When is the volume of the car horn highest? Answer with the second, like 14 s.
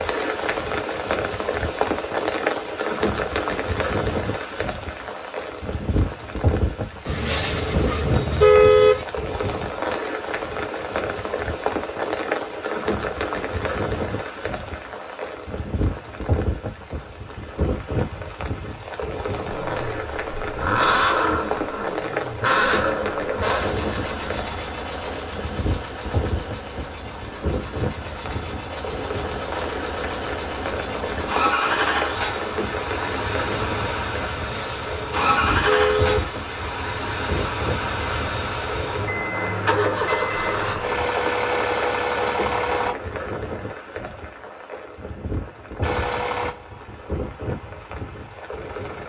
9 s.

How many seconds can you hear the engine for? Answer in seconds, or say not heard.
27 s.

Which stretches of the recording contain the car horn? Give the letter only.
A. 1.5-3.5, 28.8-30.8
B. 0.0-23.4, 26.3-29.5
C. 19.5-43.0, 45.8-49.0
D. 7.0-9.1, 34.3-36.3
D.